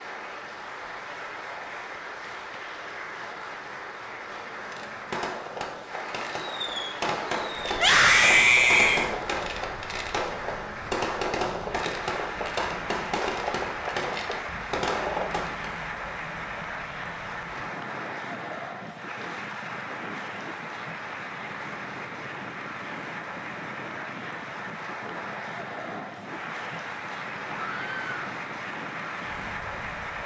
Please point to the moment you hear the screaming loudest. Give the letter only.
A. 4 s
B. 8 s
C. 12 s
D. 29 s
B.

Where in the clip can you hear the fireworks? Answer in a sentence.
The fireworks can be heard from 4.5 to 15.7 s.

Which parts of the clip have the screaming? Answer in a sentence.
You can hear the screaming from 7.8 to 9.1 s and from 27.5 to 28.1 s.